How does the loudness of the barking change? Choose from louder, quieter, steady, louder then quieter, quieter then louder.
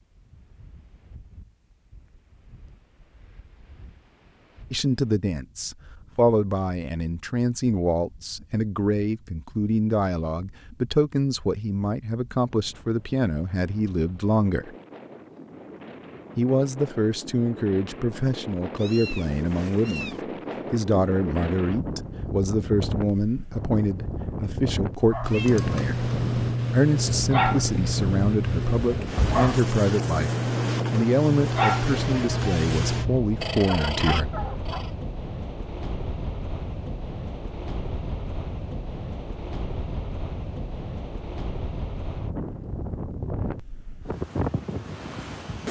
steady.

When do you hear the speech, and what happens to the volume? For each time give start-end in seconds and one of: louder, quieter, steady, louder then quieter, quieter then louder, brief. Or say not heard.
4.7-14.8 steady
16.4-26.1 steady
26.7-34.2 steady.